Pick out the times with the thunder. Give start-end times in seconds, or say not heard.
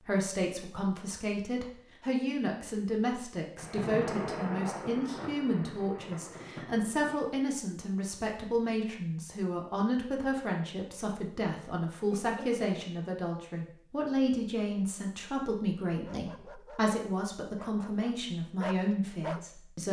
3.5-7.2.